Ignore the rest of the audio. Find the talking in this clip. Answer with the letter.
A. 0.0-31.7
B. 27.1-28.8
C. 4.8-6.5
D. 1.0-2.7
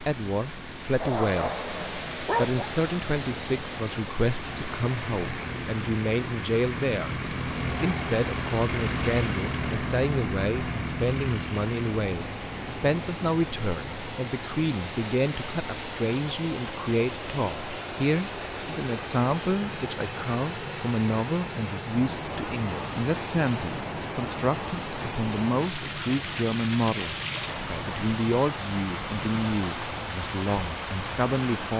A.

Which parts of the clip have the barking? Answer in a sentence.
You can hear the barking from 1.0 to 2.7 s.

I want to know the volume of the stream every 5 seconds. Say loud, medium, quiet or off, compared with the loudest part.
loud, medium, medium, loud, loud, loud, loud.